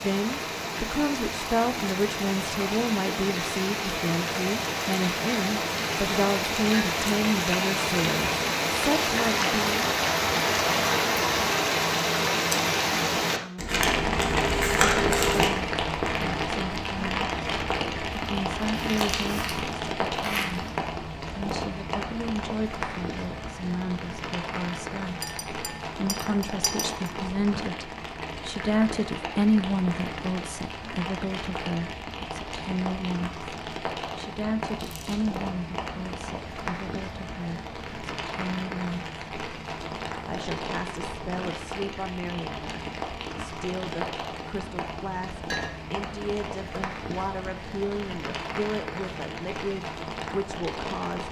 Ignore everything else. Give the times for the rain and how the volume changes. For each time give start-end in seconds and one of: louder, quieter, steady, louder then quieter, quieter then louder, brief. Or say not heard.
0.0-51.2 quieter.